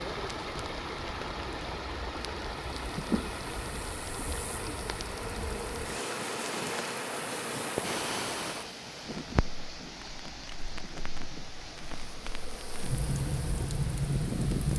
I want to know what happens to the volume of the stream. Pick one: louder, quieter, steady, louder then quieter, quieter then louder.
quieter.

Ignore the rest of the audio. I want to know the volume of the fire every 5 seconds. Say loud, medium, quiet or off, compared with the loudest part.
quiet, loud, loud.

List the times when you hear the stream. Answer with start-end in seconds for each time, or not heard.
0.0-14.7.